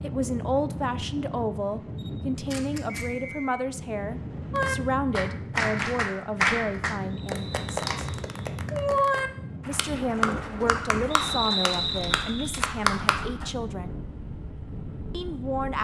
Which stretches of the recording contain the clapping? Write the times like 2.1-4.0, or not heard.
4.5-13.5.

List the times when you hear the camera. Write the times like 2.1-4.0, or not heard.
1.9-3.0, 7.3-8.2, 11.8-12.8.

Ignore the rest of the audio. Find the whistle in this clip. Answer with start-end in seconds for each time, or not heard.
2.9-3.5, 7.1-8.4, 11.1-12.6.